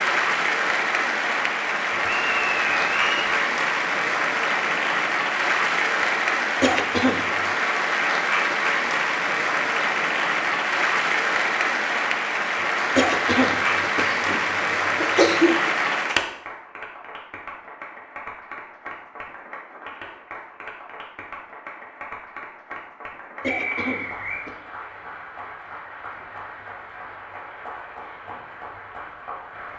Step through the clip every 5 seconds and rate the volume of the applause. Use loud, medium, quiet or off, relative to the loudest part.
loud, loud, loud, medium, quiet, quiet.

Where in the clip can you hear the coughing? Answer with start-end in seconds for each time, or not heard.
6.6-7.3, 12.9-15.7, 23.4-24.6.